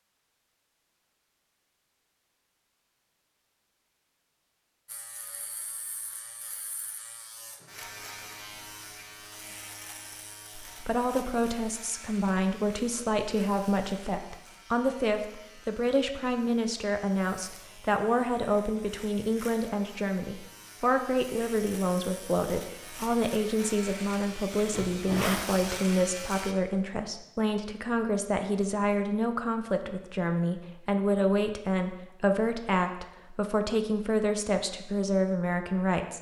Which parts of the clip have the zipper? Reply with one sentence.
You can hear the zipper from 24.7 to 25.8 s.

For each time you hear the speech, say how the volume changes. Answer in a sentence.
The speech can be heard from 10.6 to 36.1 s, at a steady volume.